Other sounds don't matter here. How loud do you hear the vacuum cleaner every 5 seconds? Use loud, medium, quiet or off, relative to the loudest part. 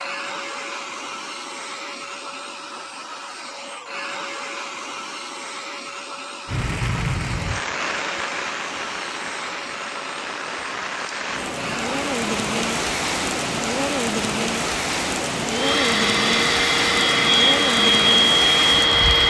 quiet, quiet, quiet, loud.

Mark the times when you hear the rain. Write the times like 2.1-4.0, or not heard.
6.5-19.2.